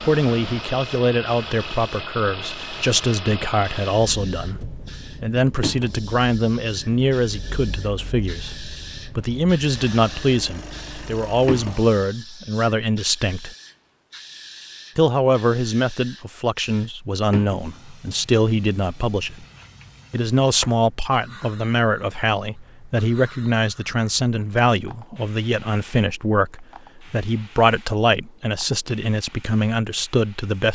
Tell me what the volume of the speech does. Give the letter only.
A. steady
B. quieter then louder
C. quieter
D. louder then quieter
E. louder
A.